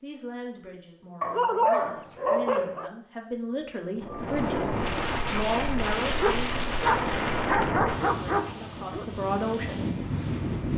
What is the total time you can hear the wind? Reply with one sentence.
The wind can be heard for 7 seconds in total.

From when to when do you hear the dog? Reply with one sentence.
You can hear the dog from 1.2 to 2.9 s and from 6.2 to 9.1 s.